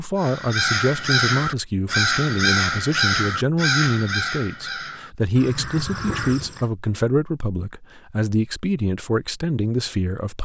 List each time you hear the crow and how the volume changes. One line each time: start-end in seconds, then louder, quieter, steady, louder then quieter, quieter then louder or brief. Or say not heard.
0.1-6.7 quieter.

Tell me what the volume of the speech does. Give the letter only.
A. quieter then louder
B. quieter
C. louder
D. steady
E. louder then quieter
D.